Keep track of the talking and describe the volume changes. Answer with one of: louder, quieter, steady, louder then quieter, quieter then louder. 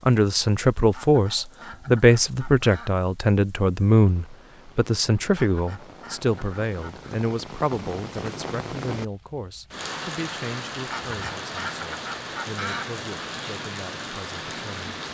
quieter.